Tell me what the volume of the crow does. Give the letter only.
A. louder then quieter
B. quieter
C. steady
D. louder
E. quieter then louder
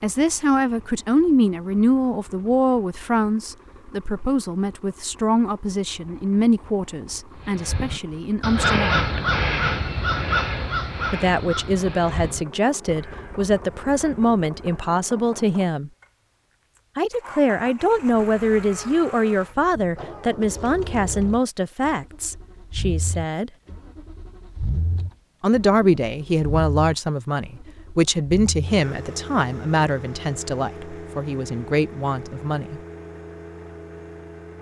B.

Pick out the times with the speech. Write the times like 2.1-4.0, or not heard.
0.0-9.1, 11.1-15.9, 16.9-23.5, 25.4-32.8.